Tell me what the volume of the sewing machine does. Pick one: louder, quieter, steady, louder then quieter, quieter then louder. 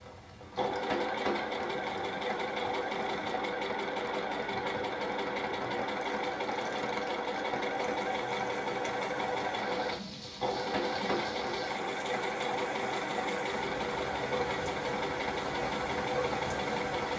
steady.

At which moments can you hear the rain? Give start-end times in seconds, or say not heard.
0.0-17.1.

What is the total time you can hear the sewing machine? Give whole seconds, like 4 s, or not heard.
17 s.